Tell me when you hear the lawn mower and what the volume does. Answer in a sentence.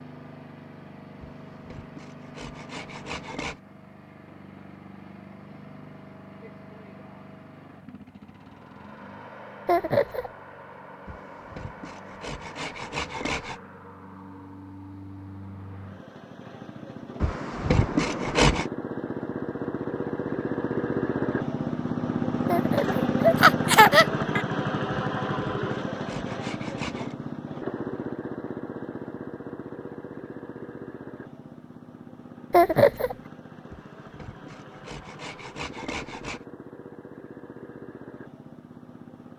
The lawn mower can be heard from 0.0 to 39.3 s, getting louder then quieter.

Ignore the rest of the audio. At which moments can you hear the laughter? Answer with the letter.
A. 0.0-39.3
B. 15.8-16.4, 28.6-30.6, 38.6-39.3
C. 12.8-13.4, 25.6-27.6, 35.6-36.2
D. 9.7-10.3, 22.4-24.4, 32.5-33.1
D.